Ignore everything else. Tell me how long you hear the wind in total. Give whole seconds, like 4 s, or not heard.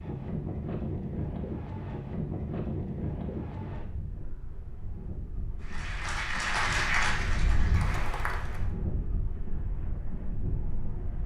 11 s.